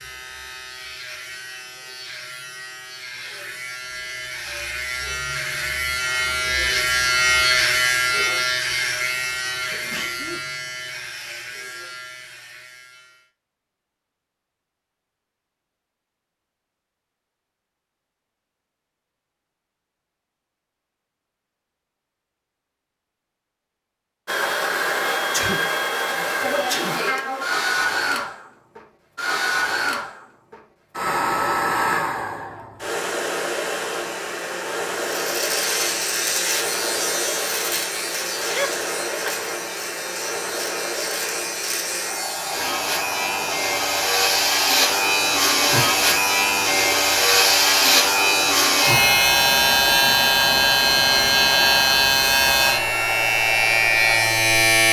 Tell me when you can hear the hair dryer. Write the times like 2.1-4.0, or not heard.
24.2-54.5.